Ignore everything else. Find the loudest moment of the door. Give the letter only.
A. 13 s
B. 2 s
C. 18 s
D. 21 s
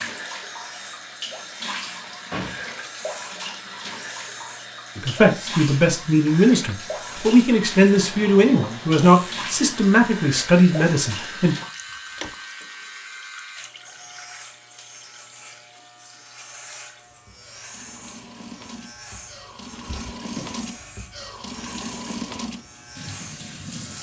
B.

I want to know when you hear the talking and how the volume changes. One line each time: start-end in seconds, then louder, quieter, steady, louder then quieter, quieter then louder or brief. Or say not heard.
5.0-11.6 steady.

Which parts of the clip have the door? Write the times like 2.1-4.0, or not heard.
1.9-2.8, 11.6-12.3, 19.9-20.6.